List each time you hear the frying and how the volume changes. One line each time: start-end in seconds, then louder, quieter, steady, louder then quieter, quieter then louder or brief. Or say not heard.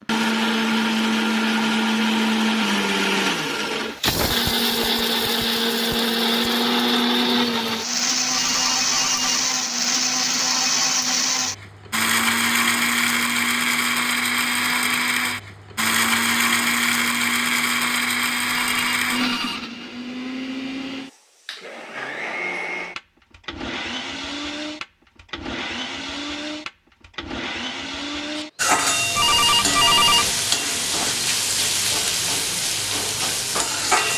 28.6-34.1 steady.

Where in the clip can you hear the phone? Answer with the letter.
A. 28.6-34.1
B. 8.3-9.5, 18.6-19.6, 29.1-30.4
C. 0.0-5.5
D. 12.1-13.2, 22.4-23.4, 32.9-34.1
B.